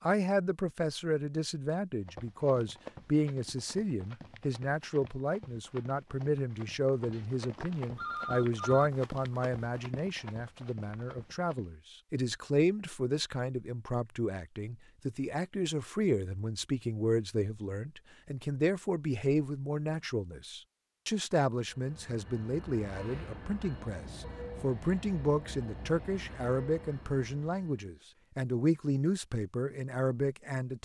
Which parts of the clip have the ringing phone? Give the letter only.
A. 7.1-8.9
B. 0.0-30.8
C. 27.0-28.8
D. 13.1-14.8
A.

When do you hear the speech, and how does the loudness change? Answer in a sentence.
The speech can be heard from 0.0 to 30.8 s, at a steady volume.